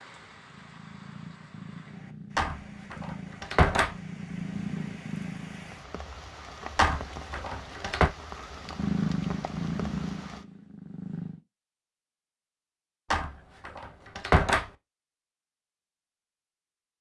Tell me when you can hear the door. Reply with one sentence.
The door can be heard from 2.4 to 4.0 s, from 6.8 to 8.1 s and from 13.1 to 14.7 s.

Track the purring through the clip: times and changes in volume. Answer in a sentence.
The purring can be heard from 0.0 to 5.8 s, getting louder; and briefly from 8.6 to 11.4 s.